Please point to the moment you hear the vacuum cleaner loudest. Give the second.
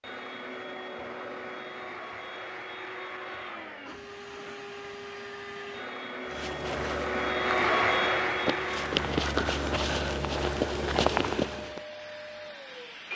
8 s.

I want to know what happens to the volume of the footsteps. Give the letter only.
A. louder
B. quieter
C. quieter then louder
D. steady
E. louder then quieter
A.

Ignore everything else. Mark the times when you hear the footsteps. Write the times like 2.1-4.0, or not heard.
6.3-11.8.